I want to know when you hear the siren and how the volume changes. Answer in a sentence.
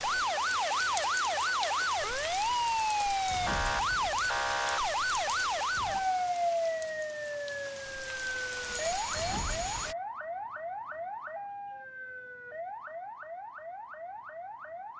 The siren can be heard from 0.0 to 14.9 s, getting quieter.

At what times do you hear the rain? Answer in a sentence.
You can hear the rain from 0.0 to 9.9 s.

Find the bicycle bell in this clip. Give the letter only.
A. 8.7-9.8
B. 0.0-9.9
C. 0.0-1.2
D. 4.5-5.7
A.